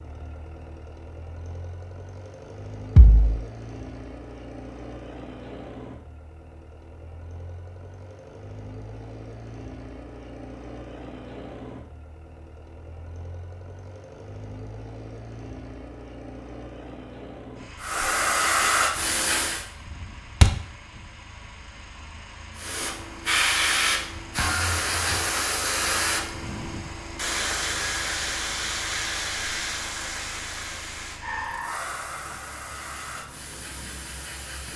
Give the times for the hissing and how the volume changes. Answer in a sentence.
The hissing can be heard briefly from 17.8 to 19.6 s; and from 22.6 to 34.7 s, getting quieter.